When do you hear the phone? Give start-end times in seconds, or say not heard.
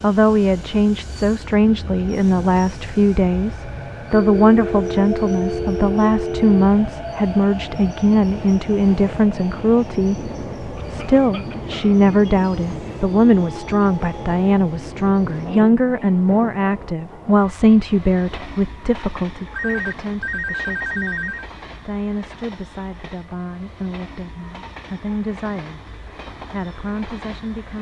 4.1-6.7, 19.6-21.5.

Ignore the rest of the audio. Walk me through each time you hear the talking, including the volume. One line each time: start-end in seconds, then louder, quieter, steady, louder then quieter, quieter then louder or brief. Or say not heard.
0.0-25.8 quieter
26.5-27.7 brief.